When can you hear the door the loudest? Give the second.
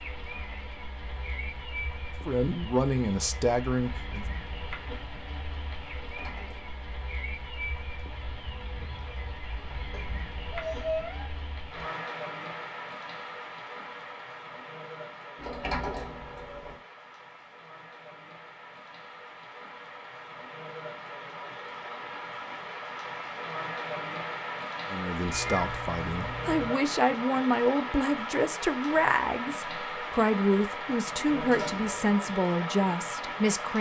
16 s.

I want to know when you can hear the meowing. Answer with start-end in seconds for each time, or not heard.
9.9-11.3, 25.3-26.8.